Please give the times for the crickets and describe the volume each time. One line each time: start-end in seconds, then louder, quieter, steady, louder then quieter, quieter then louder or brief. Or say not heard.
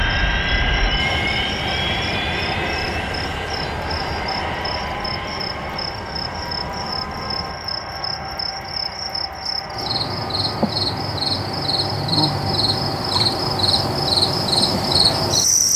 0.0-15.7 louder.